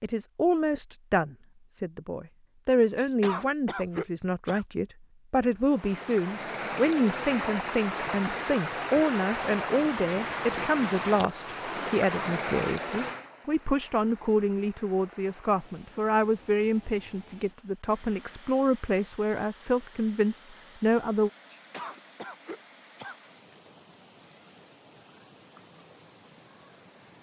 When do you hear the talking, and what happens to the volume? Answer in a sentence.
The talking can be heard from 0.0 to 21.3 s, at a steady volume.